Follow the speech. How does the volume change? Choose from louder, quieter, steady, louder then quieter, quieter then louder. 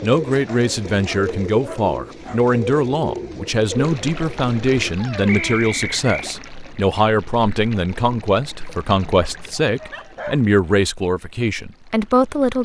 steady.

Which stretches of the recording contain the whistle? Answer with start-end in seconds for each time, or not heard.
5.2-6.3.